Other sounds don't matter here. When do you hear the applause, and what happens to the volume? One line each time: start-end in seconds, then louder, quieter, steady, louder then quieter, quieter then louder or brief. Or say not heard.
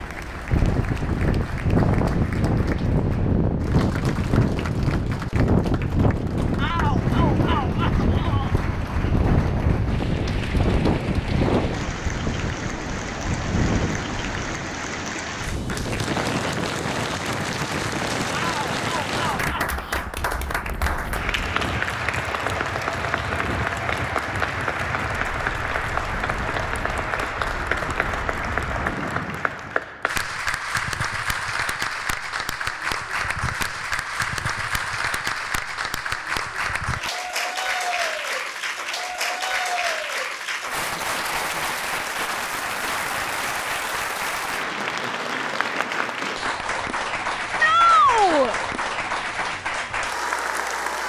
0.0-51.0 louder.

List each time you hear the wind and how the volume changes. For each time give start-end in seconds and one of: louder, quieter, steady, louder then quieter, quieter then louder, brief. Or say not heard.
0.0-29.8 quieter.